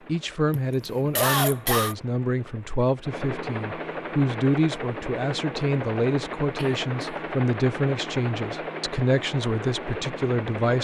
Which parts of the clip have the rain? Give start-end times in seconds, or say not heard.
not heard.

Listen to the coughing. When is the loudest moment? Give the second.
1 s.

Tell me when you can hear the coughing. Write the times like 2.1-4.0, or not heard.
0.5-1.9, 6.5-7.2.